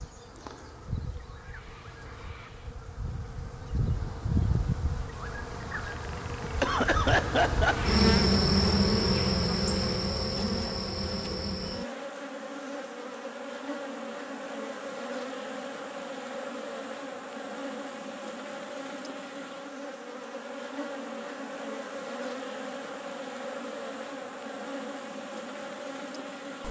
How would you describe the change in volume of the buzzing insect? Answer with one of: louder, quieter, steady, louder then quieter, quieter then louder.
louder then quieter.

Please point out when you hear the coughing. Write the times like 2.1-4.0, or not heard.
6.4-7.9.